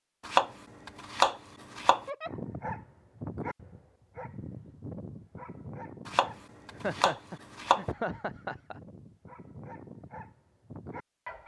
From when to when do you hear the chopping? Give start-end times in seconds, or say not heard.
0.2-2.0, 6.0-7.8.